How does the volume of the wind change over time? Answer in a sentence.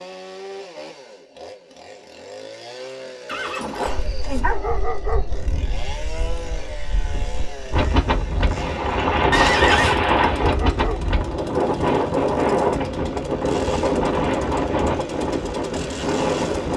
The volume of the wind goes up.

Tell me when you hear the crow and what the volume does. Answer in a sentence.
You can't hear the crow here.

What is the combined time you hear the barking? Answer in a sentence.
You can hear the barking for 2 seconds altogether.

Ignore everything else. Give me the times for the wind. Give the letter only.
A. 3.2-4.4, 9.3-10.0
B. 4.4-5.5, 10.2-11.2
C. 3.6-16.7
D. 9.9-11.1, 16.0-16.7
C.